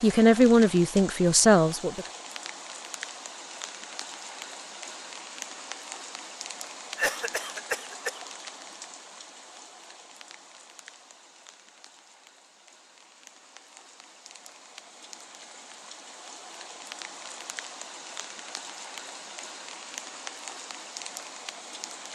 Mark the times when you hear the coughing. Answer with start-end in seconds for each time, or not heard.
7.0-8.2.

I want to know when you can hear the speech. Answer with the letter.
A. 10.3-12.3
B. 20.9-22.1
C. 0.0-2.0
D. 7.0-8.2
C.